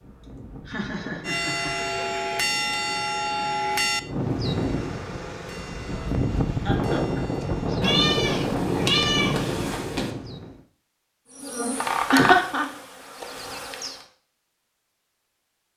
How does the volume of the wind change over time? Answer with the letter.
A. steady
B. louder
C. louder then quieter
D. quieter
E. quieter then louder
B.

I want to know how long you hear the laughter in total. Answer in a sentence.
The laughter can be heard for 3 seconds in total.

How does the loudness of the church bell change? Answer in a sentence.
The loudness of the church bell goes down.